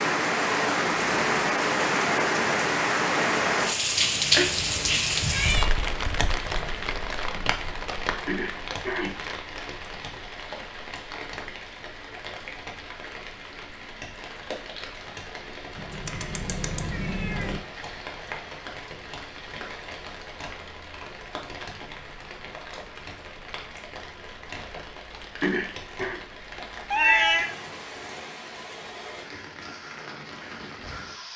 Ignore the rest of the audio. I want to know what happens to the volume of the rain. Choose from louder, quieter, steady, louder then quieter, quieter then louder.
quieter.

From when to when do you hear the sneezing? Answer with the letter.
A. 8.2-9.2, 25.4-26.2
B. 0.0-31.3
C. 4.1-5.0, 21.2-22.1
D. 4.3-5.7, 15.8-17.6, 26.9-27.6
A.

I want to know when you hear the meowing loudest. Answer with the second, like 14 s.
27 s.